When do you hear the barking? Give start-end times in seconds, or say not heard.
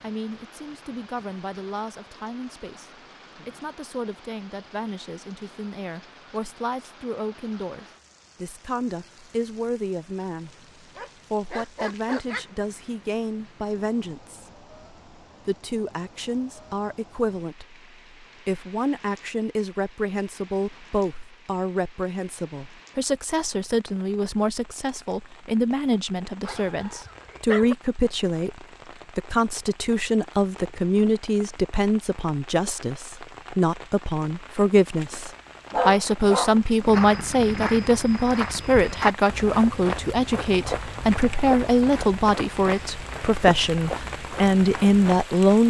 10.9-12.4, 26.4-27.8, 35.7-37.7.